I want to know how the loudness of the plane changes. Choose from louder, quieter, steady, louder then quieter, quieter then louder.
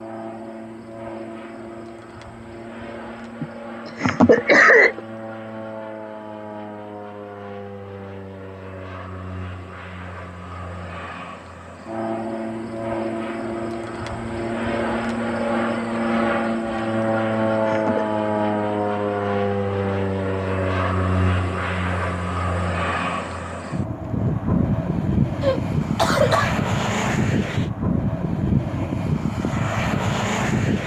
louder.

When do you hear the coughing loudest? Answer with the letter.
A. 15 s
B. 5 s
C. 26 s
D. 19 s
B.